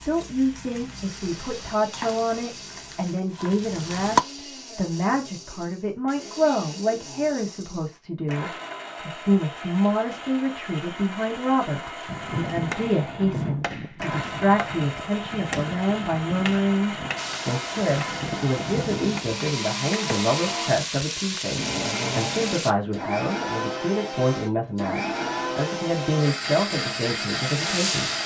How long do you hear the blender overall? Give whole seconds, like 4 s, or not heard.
28 s.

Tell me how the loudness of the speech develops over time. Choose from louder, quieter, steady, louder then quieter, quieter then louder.
steady.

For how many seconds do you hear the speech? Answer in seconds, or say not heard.
28 s.